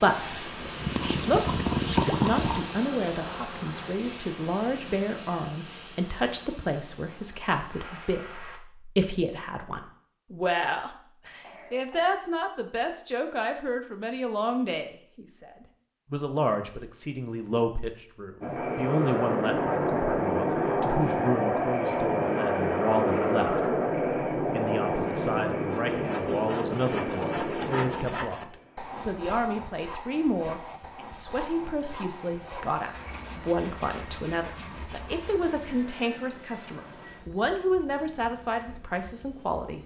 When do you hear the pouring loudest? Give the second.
2 s.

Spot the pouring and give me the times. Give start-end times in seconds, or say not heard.
0.2-2.6.